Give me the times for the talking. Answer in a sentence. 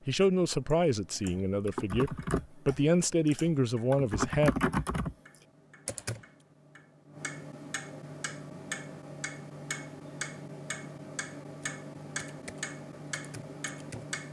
The talking can be heard from 0.1 to 4.5 s.